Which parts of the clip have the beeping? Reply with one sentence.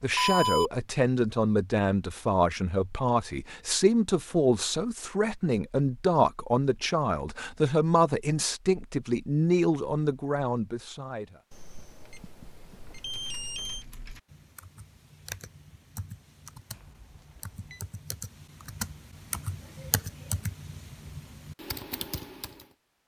You can hear the beeping from 0.1 to 0.7 s, from 11.5 to 13.8 s and from 16.7 to 17.8 s.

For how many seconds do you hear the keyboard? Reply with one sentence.
You can hear the keyboard for 10 seconds altogether.